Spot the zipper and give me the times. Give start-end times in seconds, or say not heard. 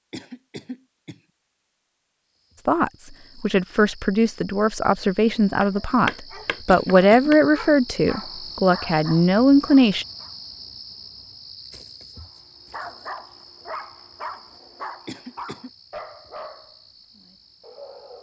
not heard.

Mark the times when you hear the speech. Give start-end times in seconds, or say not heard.
2.6-10.1.